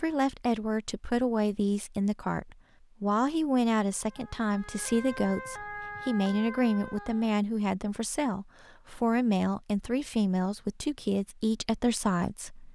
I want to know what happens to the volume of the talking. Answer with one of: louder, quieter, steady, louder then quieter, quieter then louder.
steady.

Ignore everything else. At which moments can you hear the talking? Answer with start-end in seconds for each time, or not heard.
0.0-12.6.